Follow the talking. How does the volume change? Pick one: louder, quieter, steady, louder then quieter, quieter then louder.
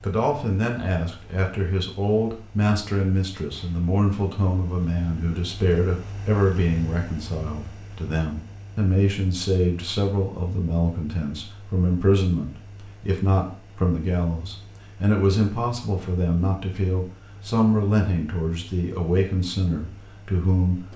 steady.